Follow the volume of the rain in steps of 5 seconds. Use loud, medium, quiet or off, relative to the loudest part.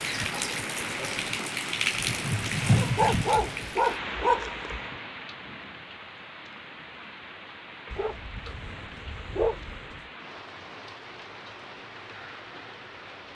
loud, quiet, quiet.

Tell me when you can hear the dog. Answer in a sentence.
You can hear the dog from 2.6 to 5.0 s and from 7.9 to 10.0 s.